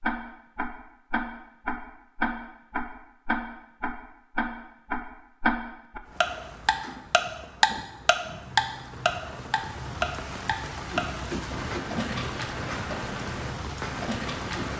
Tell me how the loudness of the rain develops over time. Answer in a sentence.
The loudness of the rain goes up.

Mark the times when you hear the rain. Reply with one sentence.
The rain can be heard from 6.0 to 14.7 s.